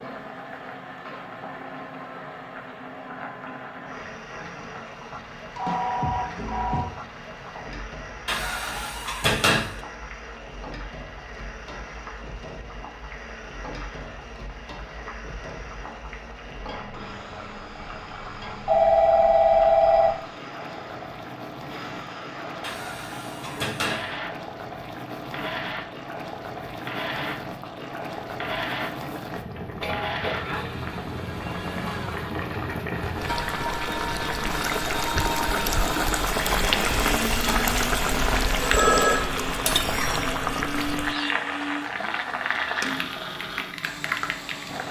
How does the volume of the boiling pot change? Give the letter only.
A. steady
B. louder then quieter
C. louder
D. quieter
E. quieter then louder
C.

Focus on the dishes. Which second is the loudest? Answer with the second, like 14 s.
9 s.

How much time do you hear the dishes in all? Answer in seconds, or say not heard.
3 s.